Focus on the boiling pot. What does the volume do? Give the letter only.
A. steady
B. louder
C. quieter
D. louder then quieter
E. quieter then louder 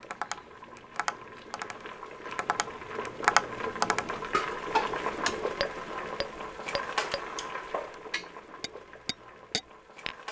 D.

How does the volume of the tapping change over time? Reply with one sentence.
The loudness of the tapping goes up, then down.